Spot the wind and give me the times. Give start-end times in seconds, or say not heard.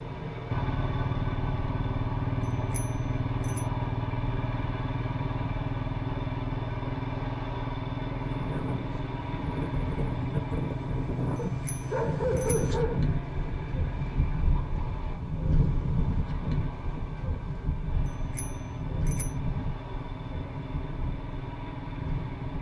8.3-22.5.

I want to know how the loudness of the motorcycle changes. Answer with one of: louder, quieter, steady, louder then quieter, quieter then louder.
quieter.